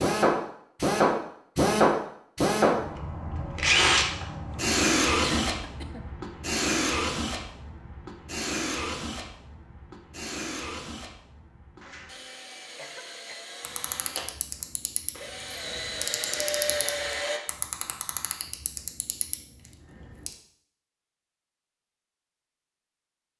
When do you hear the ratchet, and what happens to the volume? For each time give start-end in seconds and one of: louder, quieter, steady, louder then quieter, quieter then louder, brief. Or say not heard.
13.6-20.4 steady.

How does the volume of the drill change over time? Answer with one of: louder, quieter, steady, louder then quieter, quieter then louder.
quieter then louder.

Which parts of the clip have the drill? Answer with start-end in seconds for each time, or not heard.
0.0-17.4.